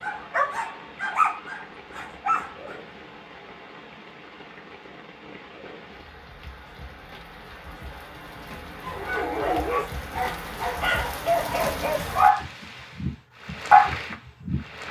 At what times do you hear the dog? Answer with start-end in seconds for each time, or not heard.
0.0-2.8, 8.8-14.7.